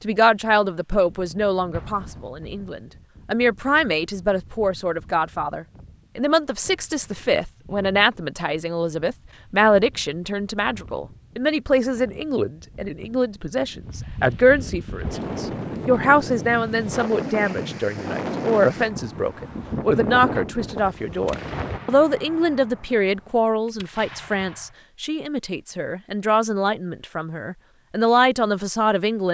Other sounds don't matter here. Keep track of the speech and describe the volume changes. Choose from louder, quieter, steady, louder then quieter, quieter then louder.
steady.